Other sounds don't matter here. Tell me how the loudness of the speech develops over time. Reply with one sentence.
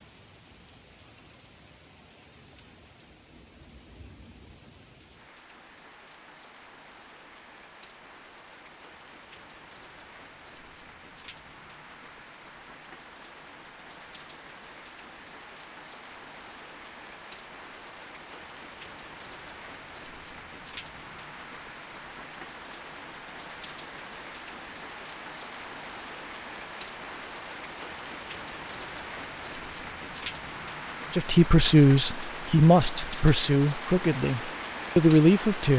The loudness of the speech goes down, then up.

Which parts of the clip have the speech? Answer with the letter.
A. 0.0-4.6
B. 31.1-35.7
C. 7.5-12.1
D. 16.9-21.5
B.